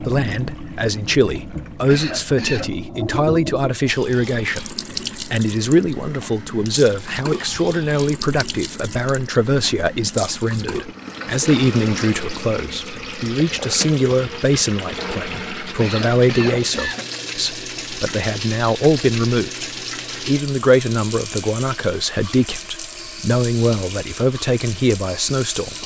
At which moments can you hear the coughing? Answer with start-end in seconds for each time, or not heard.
1.9-2.8, 15.8-17.1.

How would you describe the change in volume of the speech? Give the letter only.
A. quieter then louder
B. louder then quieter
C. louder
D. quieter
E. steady
E.